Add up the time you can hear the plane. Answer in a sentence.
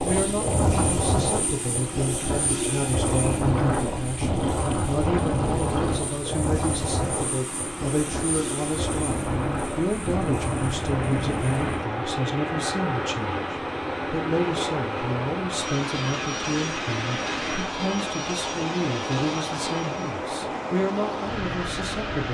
You can hear the plane for 20 seconds altogether.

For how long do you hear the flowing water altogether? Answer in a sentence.
You can hear the flowing water for 22 seconds altogether.